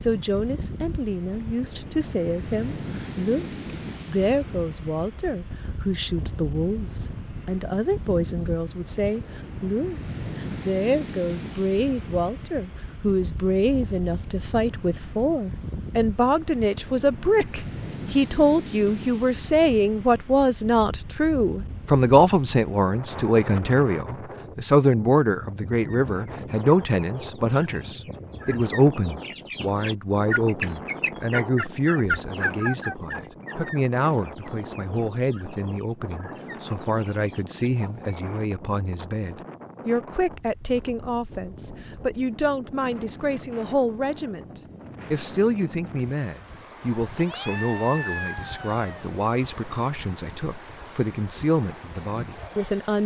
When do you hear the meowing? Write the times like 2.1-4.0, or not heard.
47.1-49.0.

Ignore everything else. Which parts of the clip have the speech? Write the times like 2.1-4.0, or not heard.
0.0-53.0.